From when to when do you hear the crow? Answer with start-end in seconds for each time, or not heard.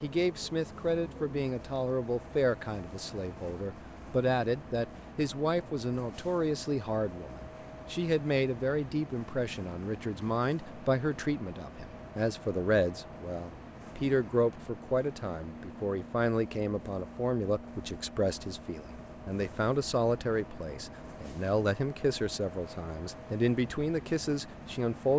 not heard.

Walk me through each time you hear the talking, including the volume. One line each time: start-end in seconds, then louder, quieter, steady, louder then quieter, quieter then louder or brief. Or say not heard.
0.0-25.1 steady.